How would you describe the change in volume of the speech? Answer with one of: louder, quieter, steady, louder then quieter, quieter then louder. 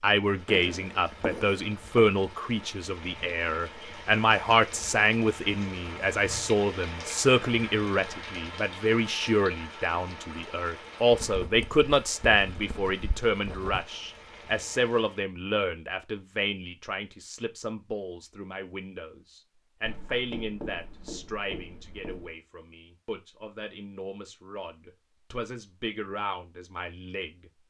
quieter.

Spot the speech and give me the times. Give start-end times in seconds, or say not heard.
0.0-27.5.